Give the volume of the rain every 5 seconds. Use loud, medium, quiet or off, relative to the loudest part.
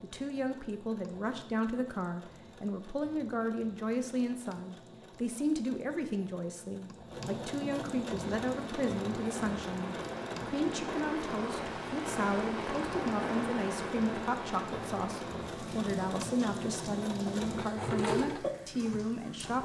off, medium, loud, medium.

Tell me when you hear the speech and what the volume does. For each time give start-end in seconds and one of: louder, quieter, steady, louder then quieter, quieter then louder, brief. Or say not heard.
0.0-19.6 steady.